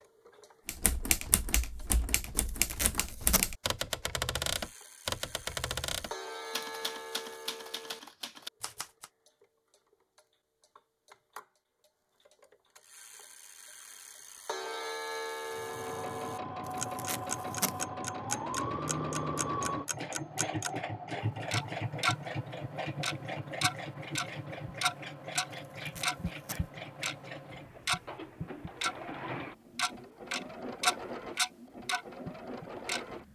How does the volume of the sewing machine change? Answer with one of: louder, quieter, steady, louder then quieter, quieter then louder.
quieter.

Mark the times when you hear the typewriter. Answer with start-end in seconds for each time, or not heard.
0.7-9.1.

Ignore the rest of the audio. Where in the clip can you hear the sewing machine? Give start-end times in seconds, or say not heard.
15.4-33.3.